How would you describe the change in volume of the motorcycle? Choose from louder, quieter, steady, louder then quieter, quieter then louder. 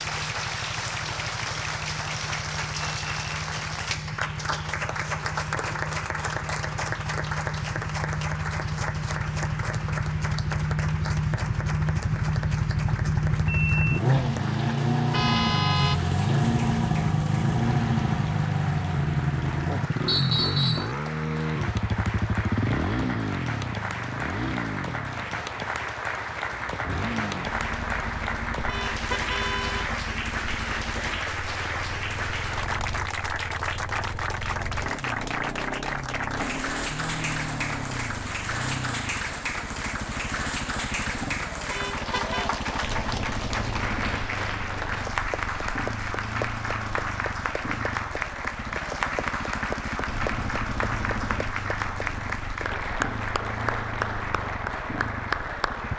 louder then quieter.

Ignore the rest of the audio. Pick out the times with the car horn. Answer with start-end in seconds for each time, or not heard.
14.1-16.5, 28.6-30.0, 41.7-42.5.